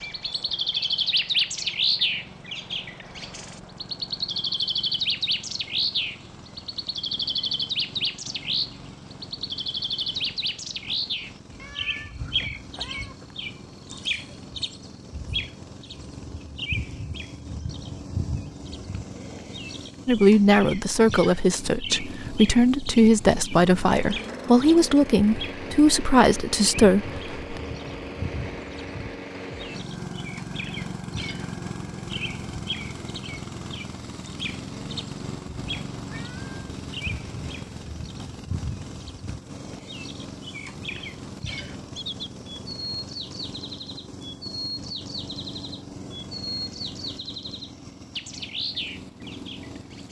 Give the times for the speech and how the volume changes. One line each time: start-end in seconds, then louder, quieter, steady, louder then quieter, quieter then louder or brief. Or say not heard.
20.1-27.6 steady.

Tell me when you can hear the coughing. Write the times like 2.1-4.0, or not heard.
not heard.